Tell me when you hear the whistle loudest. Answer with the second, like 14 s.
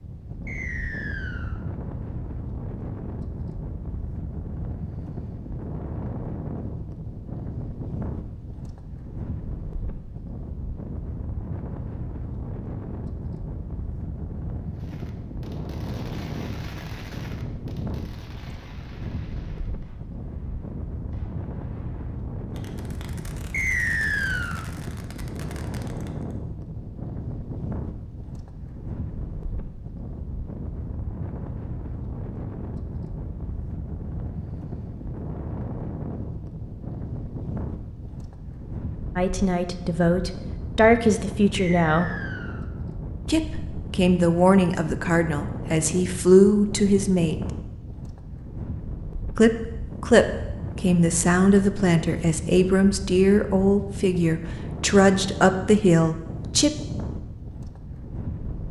24 s.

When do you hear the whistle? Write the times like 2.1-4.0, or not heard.
0.5-1.6, 23.5-24.6, 41.5-42.6.